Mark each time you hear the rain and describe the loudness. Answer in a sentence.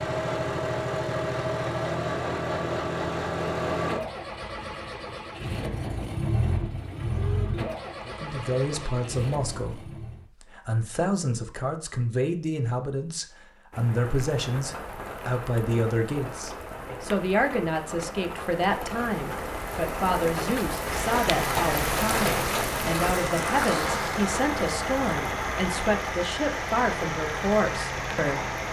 You can hear the rain from 13.7 to 28.6 s, getting louder then quieter.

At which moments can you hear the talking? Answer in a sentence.
You can hear the talking from 8.1 to 28.4 s.